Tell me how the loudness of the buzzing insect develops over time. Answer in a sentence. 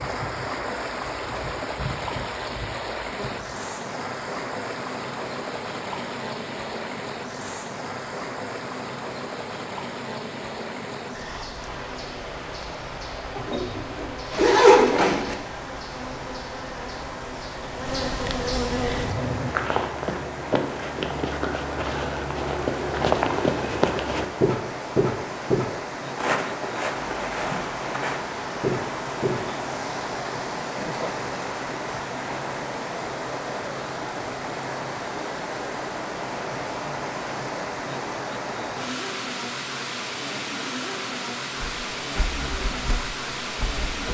The volume of the buzzing insect goes up.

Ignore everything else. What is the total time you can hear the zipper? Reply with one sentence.
The zipper can be heard for 2 seconds in total.